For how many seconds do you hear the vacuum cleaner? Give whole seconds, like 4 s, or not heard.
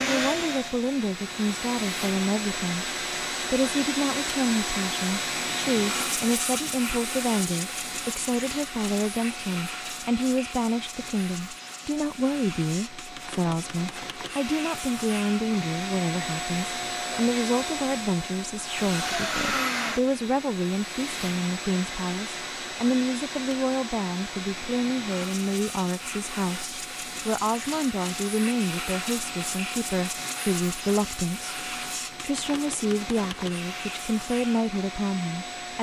36 s.